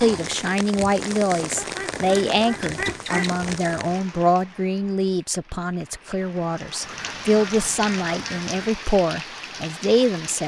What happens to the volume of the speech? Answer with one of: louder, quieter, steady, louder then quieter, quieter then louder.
steady.